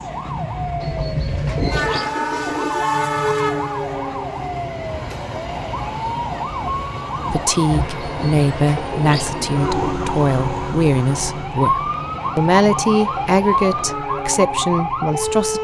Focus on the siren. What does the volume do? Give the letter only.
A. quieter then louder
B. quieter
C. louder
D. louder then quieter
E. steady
C.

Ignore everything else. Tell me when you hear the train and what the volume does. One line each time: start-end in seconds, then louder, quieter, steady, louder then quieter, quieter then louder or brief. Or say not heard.
0.0-15.5 quieter.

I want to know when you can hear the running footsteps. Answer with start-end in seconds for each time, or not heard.
not heard.